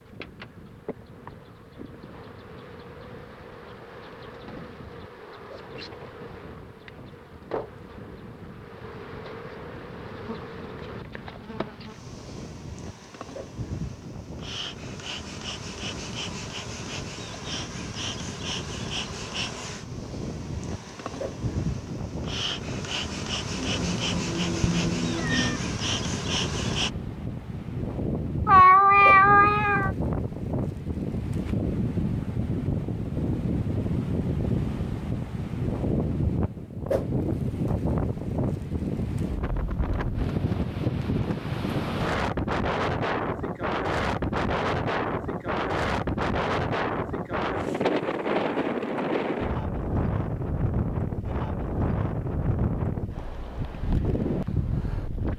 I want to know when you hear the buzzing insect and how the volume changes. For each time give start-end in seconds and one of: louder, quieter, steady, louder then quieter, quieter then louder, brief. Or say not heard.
0.0-26.9 louder.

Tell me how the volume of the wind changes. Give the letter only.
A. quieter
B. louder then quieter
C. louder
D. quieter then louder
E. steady
C.